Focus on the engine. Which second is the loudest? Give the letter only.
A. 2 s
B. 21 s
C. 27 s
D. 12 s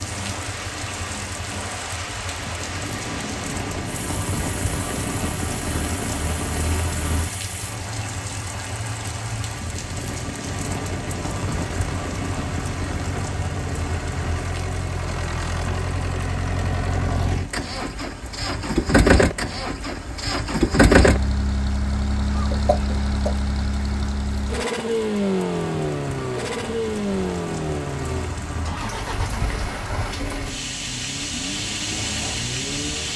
B.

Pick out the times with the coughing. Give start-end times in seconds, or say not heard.
22.3-23.4.